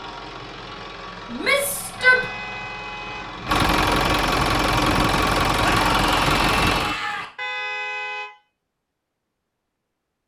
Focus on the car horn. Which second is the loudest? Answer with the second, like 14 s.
8 s.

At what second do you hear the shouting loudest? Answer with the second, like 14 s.
2 s.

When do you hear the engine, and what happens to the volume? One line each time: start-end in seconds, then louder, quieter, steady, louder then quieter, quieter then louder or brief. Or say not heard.
0.0-7.0 louder.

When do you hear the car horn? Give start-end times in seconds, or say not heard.
1.9-3.5, 7.3-8.3.